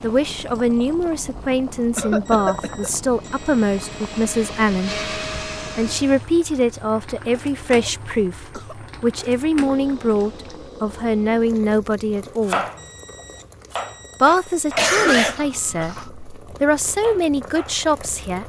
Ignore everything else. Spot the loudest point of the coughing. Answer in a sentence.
The volume of the coughing peaks at 15 seconds.